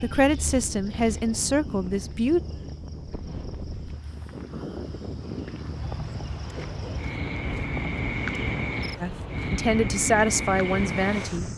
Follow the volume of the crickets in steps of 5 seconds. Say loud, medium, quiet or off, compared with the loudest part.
quiet, loud, loud.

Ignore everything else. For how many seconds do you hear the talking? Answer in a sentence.
You can hear the talking for 5 seconds altogether.